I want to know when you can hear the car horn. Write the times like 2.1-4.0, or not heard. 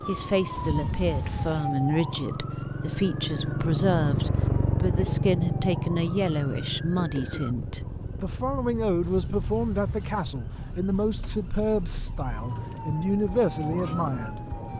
0.6-1.8, 9.0-10.2.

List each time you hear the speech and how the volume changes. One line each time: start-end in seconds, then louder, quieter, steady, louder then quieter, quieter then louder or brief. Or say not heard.
0.1-14.5 steady.